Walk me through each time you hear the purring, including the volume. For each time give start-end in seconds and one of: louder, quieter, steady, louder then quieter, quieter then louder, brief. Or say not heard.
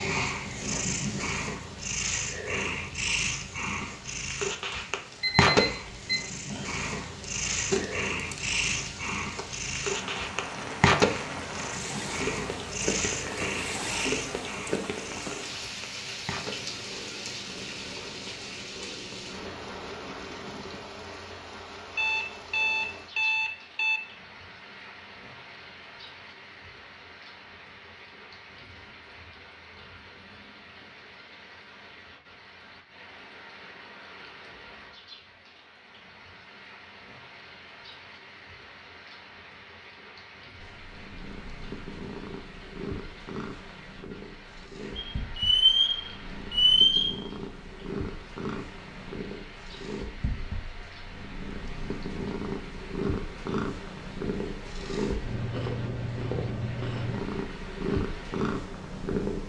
0.0-20.8 quieter
40.5-59.4 louder.